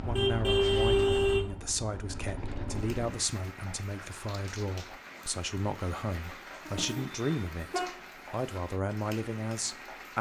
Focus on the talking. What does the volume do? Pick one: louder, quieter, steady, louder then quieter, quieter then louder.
steady.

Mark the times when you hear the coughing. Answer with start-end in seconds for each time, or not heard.
not heard.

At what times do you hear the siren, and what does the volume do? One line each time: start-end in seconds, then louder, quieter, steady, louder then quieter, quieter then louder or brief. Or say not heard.
not heard.